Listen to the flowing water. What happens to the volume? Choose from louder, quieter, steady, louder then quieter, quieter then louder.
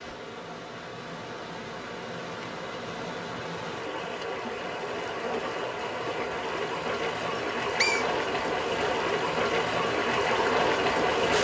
louder.